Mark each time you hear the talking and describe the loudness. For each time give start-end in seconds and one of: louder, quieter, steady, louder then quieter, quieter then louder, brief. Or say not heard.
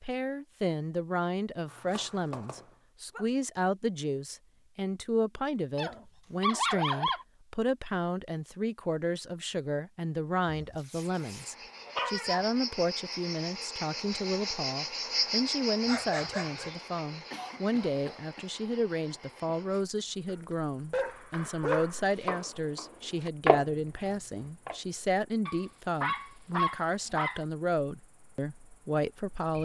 0.0-29.6 steady.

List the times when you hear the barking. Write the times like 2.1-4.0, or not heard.
1.6-3.2, 5.8-7.2, 10.4-12.4, 15.8-16.7, 20.2-21.9, 25.4-27.4.